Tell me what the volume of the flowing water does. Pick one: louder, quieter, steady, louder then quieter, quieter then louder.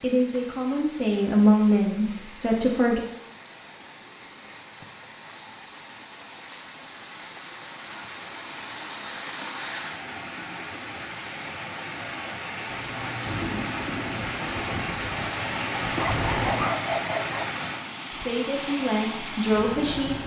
louder.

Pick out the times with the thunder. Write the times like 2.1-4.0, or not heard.
12.7-16.7.